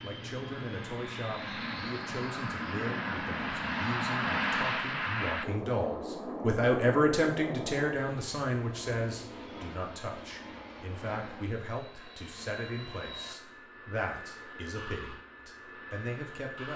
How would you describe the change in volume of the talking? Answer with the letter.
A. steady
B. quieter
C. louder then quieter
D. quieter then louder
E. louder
C.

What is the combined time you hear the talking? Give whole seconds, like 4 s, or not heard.
17 s.